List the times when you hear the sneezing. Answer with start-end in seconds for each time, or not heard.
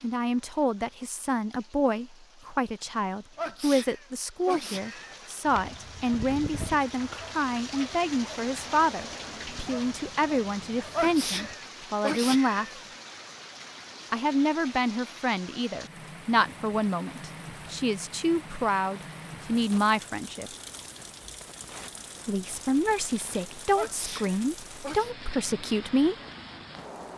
3.4-5.2, 10.9-12.8, 23.8-25.1.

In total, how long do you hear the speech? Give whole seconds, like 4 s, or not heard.
23 s.